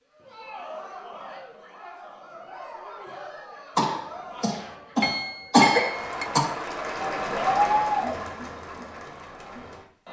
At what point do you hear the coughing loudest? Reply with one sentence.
The volume of the coughing peaks at 6 seconds.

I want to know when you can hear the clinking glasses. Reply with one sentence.
The clinking glasses can be heard from 5.0 to 6.2 s.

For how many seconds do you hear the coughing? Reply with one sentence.
The coughing can be heard for 3 seconds in total.